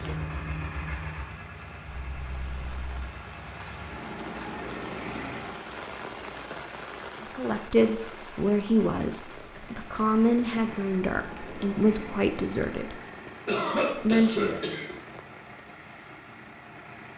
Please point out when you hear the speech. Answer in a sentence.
The speech can be heard from 7.3 to 13.0 s and from 14.0 to 14.6 s.